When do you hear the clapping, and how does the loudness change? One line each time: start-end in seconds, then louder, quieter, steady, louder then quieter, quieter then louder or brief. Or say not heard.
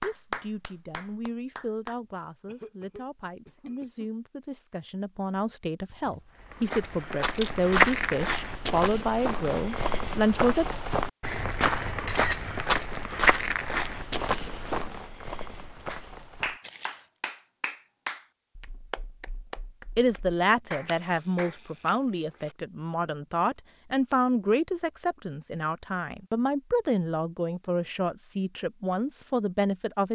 0.0-1.9 brief
15.8-21.6 quieter then louder.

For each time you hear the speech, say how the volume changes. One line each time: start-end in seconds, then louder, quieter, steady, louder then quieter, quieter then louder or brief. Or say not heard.
0.0-10.7 louder
19.9-30.1 steady.